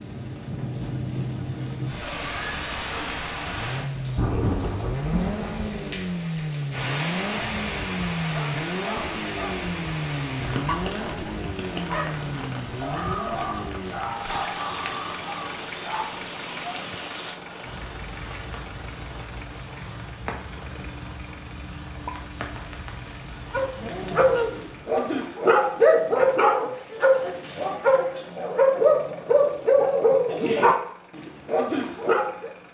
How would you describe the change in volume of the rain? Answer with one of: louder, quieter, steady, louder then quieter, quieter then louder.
quieter.